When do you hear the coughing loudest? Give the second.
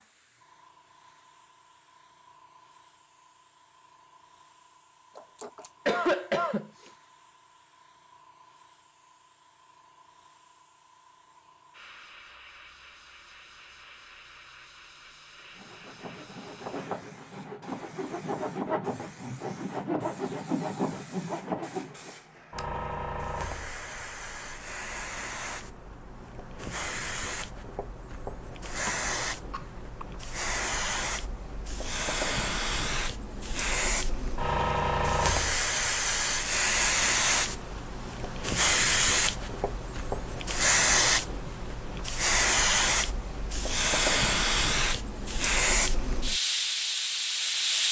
6 s.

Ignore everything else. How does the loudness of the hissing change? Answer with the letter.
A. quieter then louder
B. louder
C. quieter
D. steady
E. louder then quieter
B.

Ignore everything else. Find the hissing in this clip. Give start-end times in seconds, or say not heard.
0.0-47.8.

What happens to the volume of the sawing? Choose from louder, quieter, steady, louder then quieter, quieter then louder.
louder.